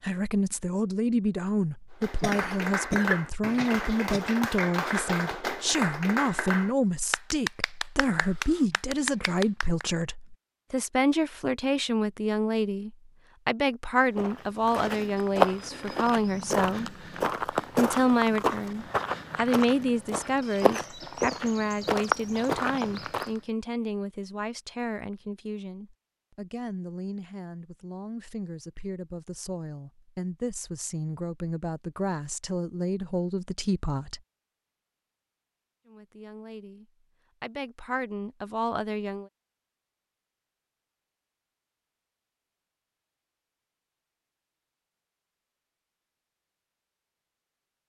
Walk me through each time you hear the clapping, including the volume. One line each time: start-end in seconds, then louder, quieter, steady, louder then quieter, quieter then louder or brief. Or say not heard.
2.0-9.8 steady.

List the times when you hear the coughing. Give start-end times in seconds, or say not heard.
2.2-4.2.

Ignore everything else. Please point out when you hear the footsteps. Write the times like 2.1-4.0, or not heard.
14.2-23.4.